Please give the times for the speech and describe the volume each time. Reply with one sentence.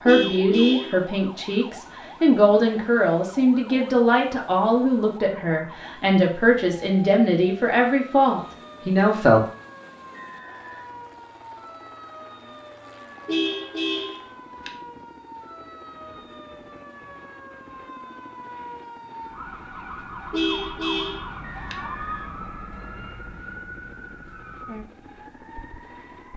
The speech can be heard from 0.1 to 9.4 s, at a steady volume.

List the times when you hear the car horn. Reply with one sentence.
The car horn can be heard from 0.1 to 1.0 s, from 13.2 to 14.7 s and from 20.3 to 21.8 s.